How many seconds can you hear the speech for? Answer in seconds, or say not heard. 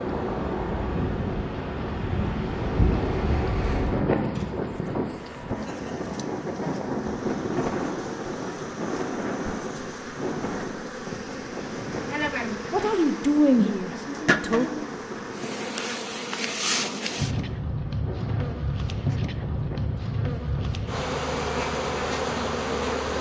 2 s.